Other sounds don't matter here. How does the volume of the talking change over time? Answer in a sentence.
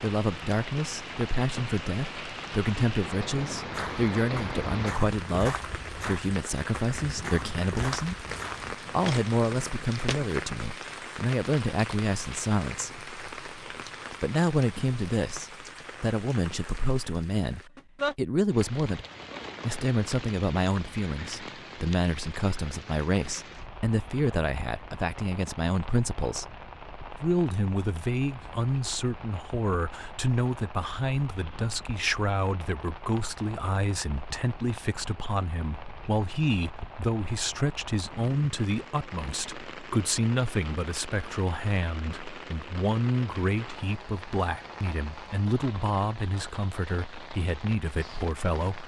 The volume of the talking stays about the same.